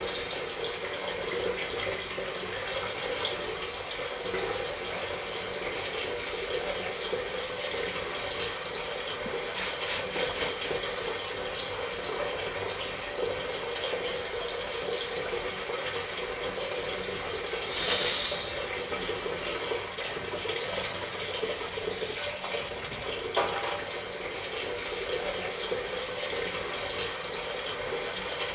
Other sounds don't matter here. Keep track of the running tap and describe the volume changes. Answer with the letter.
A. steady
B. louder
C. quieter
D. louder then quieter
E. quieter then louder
A.